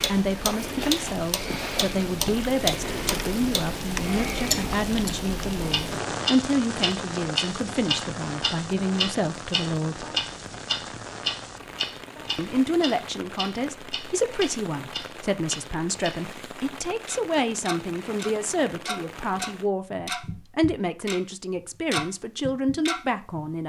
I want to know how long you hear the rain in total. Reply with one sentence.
The rain can be heard for 20 seconds in total.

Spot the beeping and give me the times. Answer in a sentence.
You can't hear the beeping here.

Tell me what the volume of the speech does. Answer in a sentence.
The loudness of the speech stays about the same.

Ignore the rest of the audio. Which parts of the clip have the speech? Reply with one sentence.
You can hear the speech from 0.1 to 10.1 s and from 12.3 to 23.6 s.